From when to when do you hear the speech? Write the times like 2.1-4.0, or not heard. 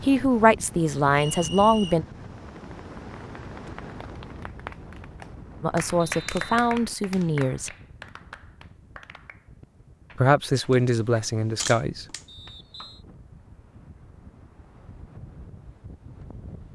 0.0-2.0, 5.6-7.7, 10.2-12.1.